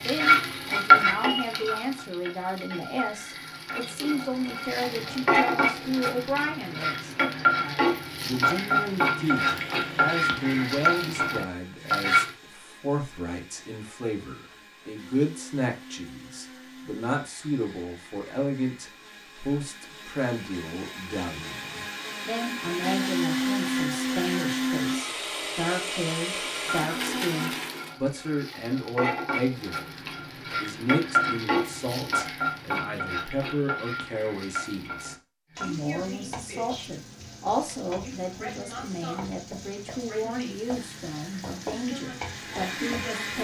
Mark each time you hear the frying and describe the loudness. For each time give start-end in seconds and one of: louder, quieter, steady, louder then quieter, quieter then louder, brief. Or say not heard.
0.0-12.3 quieter then louder
26.4-43.4 louder then quieter.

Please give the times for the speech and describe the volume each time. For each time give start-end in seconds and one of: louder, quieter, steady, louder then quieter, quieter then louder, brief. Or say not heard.
0.0-43.4 steady.